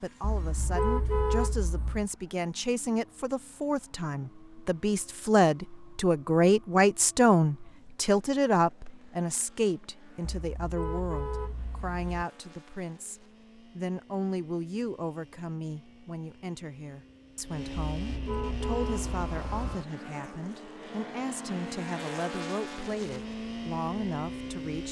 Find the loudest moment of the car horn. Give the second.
1 s.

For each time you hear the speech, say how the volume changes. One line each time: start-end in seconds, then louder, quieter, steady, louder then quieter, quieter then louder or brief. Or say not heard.
0.0-24.8 louder then quieter.